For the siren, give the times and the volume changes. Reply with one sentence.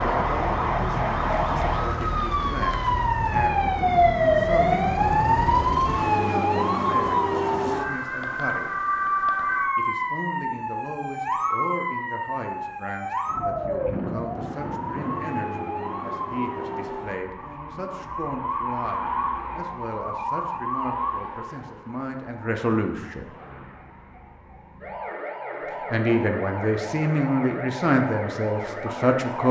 You can hear the siren from 0.0 to 29.4 s, getting quieter.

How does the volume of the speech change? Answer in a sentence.
The volume of the speech goes up.